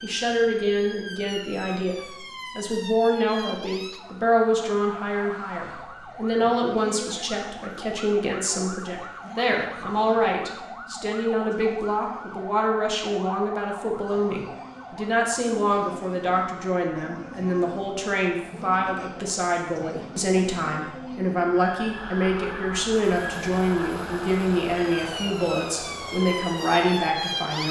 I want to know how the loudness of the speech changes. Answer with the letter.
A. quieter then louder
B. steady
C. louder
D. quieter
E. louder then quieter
B.